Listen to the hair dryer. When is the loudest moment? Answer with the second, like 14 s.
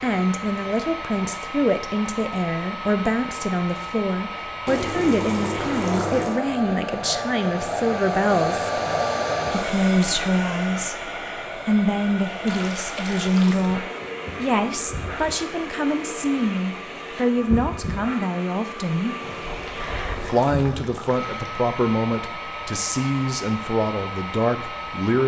9 s.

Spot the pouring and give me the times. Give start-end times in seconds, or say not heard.
4.7-6.4, 12.4-13.7, 19.2-21.4.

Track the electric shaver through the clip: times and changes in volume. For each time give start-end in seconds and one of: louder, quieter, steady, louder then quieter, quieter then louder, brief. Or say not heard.
not heard.